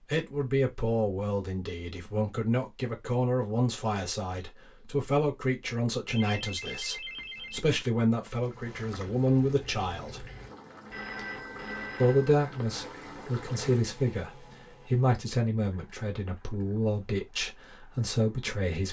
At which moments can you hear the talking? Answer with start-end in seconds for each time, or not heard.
0.1-10.3, 12.0-18.8.